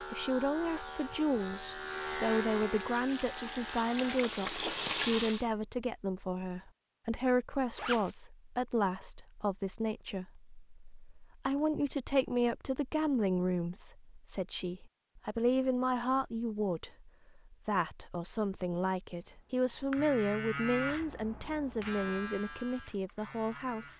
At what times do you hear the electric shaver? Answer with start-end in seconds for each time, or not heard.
0.0-4.2, 19.2-23.9.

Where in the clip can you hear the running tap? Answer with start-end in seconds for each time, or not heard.
1.7-5.5.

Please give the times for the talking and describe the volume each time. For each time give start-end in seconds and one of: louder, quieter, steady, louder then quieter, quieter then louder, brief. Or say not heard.
0.0-23.9 steady.